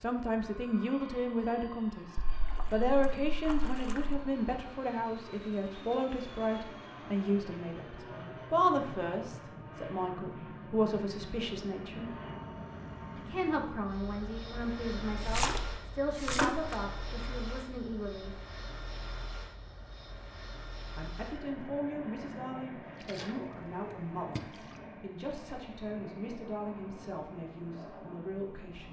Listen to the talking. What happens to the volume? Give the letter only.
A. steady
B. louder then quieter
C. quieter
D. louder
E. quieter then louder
C.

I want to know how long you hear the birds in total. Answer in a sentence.
You can't hear the birds here.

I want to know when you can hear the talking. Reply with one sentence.
The talking can be heard from 0.0 to 12.2 s, from 13.2 to 18.4 s and from 20.9 to 28.8 s.